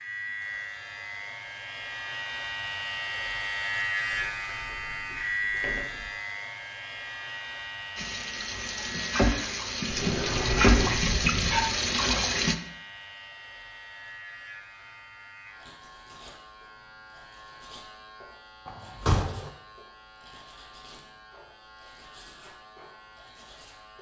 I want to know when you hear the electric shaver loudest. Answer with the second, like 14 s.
4 s.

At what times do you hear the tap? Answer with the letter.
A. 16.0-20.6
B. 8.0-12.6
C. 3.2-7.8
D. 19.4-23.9
B.